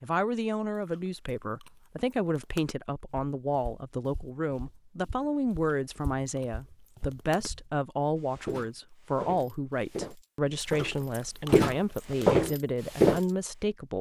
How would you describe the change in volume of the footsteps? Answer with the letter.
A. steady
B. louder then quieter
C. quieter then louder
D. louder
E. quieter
D.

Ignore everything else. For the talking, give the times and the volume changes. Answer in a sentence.
You can hear the talking from 0.0 to 13.9 s, at a steady volume.